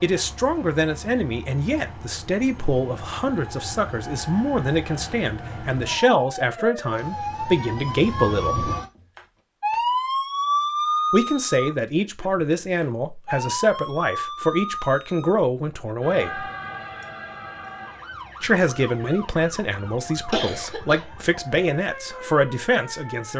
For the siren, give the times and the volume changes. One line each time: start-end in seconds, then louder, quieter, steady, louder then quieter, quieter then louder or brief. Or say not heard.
0.0-23.3 louder then quieter.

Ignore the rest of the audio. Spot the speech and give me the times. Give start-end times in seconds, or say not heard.
0.0-8.7, 11.1-16.4, 18.4-23.3.